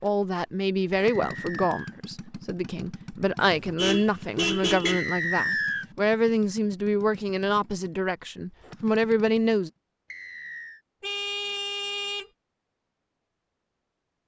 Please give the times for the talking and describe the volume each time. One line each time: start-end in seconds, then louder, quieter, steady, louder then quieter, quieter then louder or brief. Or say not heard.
0.0-9.7 steady.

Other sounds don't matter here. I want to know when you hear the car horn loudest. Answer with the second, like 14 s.
5 s.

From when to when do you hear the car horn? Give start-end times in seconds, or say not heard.
3.4-5.0, 11.0-12.2.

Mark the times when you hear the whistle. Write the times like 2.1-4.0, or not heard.
0.9-1.9, 4.8-5.8, 10.1-10.8.